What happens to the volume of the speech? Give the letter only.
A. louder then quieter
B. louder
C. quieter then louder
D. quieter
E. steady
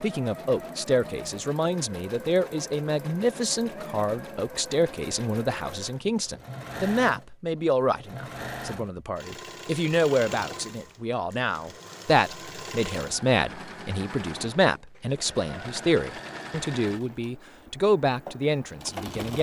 E.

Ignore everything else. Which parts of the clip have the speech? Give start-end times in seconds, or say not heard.
0.0-19.3.